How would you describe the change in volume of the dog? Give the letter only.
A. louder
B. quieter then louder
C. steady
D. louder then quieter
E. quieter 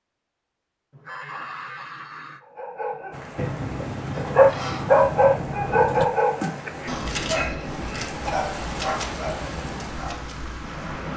D.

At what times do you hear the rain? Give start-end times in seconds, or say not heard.
3.1-11.1.